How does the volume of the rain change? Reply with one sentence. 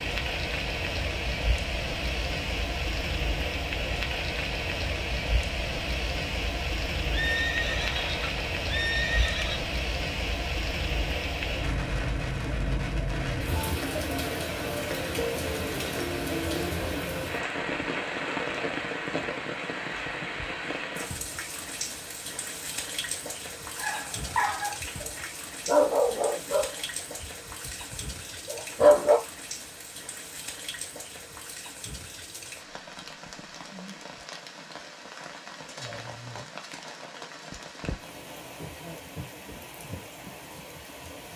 The loudness of the rain goes down.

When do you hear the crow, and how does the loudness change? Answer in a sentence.
The crow can't be heard in this clip.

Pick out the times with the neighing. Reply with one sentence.
The neighing can be heard from 7.1 to 9.6 s.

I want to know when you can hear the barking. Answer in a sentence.
The barking can be heard from 23.8 to 29.2 s.